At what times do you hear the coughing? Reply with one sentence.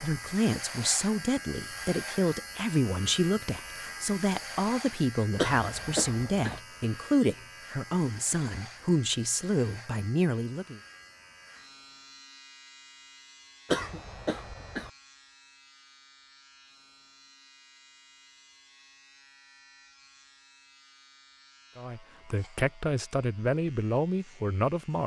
You can hear the coughing from 5.3 to 6.6 s and from 13.7 to 14.9 s.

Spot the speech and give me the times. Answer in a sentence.
The speech can be heard from 0.0 to 10.8 s and from 21.8 to 25.0 s.